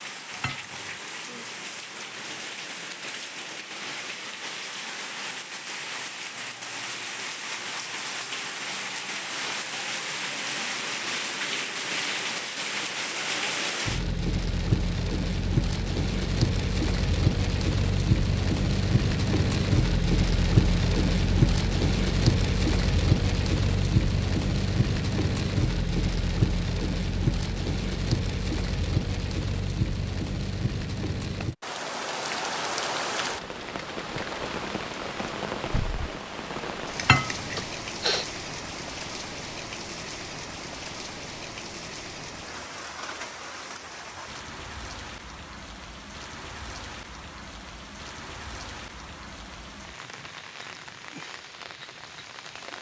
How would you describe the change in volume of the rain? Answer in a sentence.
The volume of the rain goes up, then down.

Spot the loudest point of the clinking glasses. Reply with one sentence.
The volume of the clinking glasses peaks at 37 seconds.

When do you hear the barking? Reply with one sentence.
The barking can't be heard in this clip.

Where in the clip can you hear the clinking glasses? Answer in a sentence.
The clinking glasses can be heard from 0.3 to 1.0 s and from 37.0 to 37.6 s.